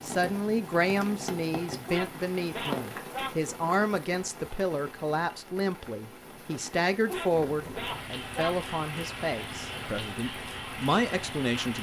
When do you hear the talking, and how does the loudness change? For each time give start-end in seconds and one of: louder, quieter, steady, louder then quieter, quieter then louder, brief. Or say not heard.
0.0-11.7 steady.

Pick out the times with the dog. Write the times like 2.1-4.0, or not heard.
1.8-3.3, 7.0-8.6.